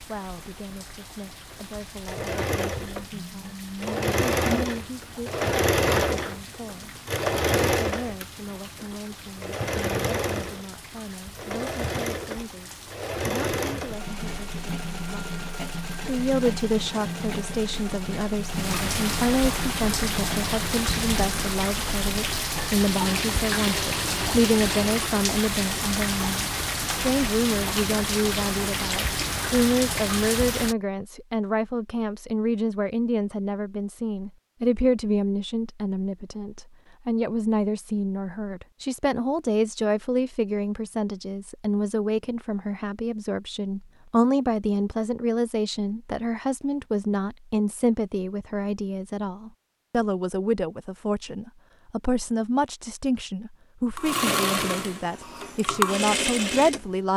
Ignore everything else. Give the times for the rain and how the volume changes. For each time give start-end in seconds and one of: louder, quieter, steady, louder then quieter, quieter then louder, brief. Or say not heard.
0.0-30.8 louder.